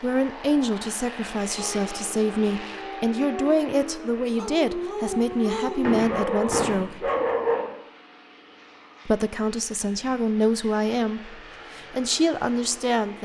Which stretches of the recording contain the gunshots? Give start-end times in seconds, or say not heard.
5.8-6.9.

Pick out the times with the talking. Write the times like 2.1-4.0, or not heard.
0.0-7.1, 9.1-13.1.